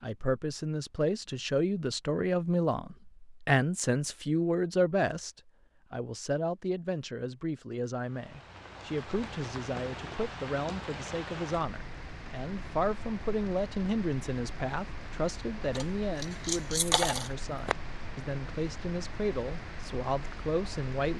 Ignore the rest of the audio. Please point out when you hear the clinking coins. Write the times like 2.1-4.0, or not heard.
15.8-17.8.